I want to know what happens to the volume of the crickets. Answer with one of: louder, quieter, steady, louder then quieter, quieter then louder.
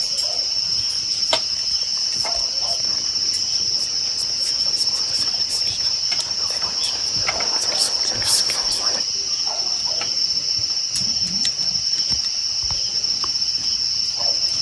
steady.